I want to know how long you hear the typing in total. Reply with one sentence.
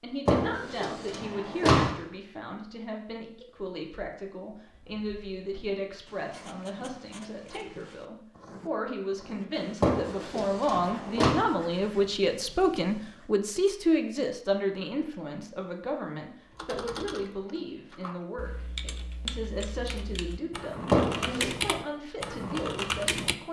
You can hear the typing for 7 seconds altogether.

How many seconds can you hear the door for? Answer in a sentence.
The door can be heard for 4 seconds in total.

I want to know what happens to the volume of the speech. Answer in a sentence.
The volume of the speech goes up, then down.